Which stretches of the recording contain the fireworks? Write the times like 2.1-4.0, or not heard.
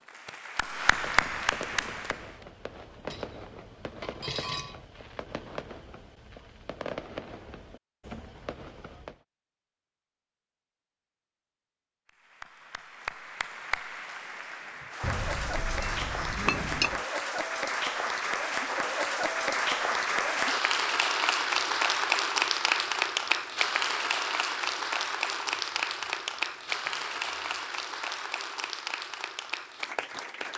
0.8-9.2.